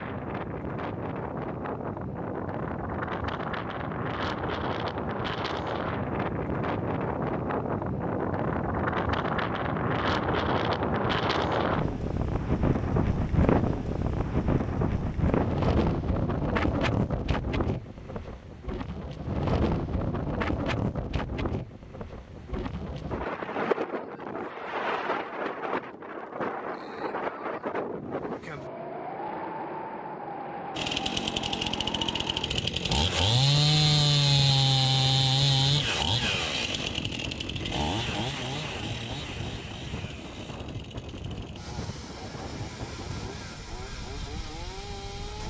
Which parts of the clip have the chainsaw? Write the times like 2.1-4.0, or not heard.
30.8-45.4.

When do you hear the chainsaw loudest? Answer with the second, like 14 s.
34 s.